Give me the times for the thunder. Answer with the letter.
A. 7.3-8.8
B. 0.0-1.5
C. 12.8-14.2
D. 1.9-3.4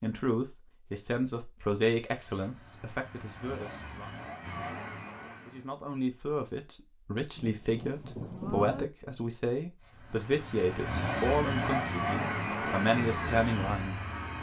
A.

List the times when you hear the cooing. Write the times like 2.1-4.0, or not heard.
not heard.